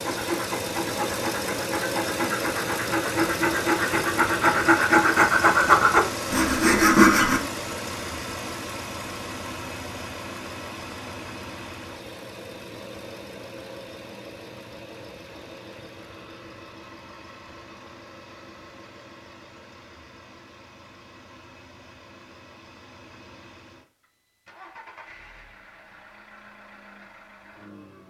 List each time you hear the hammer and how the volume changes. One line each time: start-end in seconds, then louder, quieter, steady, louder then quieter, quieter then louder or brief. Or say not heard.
not heard.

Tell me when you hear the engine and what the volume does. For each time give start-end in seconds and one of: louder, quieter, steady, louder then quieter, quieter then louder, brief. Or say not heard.
0.0-28.0 quieter.